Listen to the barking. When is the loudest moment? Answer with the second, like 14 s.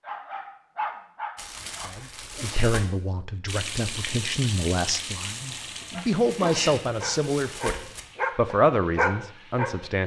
9 s.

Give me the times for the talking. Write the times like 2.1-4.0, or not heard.
1.9-7.8, 8.3-10.0.